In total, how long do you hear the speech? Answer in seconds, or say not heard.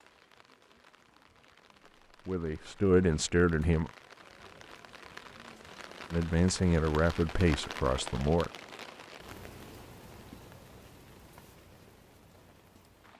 4 s.